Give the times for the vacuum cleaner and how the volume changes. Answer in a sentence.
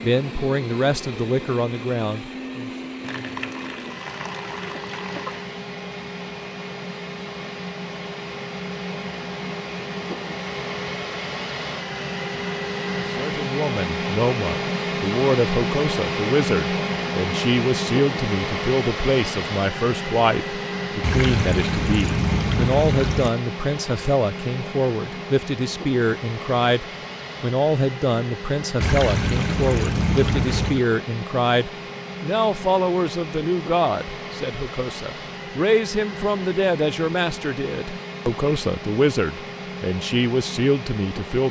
You can hear the vacuum cleaner from 0.0 to 41.4 s, getting louder then quieter.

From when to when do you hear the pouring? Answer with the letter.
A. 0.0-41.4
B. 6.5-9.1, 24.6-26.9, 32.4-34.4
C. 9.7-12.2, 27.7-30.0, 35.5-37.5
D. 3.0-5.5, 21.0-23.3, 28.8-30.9
D.